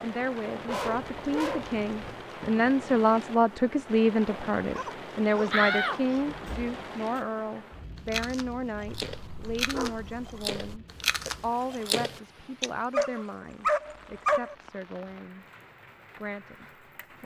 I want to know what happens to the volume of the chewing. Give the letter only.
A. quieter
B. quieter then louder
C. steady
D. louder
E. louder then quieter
D.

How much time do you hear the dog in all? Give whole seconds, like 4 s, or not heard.
7 s.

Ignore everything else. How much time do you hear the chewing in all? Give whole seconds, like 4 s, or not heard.
5 s.